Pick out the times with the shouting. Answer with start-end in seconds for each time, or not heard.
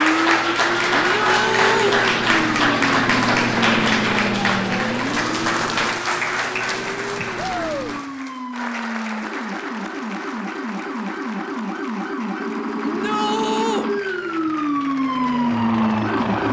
1.1-2.0, 7.3-8.0, 12.8-13.9.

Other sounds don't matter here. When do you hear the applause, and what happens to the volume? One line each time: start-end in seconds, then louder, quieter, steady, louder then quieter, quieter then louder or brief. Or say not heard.
0.0-16.4 quieter.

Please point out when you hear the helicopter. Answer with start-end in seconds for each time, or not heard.
0.0-8.1, 12.9-16.4.